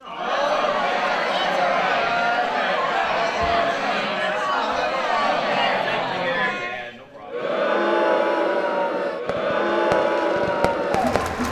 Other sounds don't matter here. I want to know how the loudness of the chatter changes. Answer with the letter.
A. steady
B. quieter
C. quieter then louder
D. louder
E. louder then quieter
A.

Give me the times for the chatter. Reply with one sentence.
The chatter can be heard from 0.0 to 11.4 s.